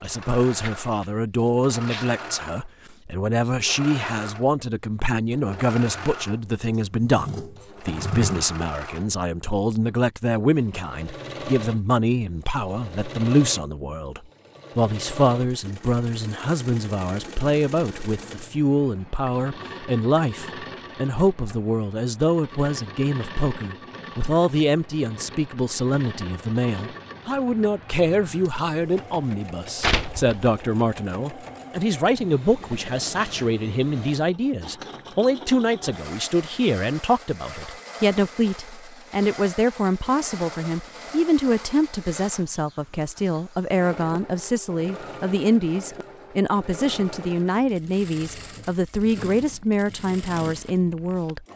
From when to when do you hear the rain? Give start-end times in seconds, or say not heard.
not heard.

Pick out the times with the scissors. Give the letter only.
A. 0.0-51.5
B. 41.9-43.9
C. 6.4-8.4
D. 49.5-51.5
C.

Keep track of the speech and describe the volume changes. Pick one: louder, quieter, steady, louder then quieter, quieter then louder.
steady.